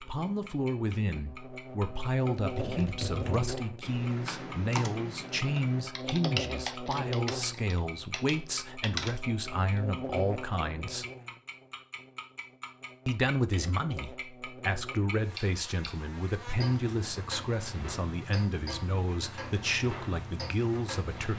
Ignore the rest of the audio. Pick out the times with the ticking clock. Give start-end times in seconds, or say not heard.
0.0-21.3.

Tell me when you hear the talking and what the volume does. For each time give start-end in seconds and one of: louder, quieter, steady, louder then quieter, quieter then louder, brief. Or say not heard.
0.0-11.1 steady
13.1-21.3 steady.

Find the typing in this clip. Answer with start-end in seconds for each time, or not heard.
2.4-9.8.